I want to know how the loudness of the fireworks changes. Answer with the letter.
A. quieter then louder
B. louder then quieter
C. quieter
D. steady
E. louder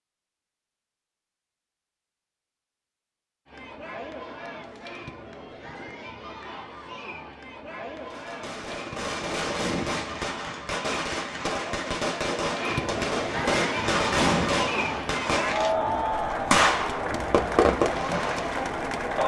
E.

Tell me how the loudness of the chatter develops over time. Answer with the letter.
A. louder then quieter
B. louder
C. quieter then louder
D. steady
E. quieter
B.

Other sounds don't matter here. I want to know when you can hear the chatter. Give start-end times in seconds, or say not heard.
3.5-19.2.